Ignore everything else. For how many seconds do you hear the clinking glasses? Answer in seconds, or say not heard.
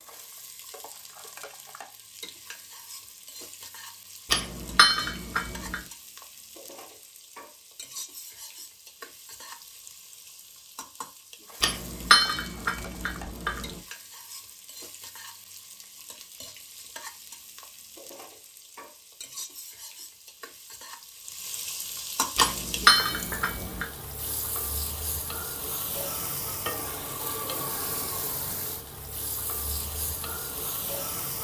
5 s.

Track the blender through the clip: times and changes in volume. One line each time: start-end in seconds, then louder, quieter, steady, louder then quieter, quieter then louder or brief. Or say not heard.
not heard.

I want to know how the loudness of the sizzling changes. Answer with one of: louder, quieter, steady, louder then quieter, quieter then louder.
louder.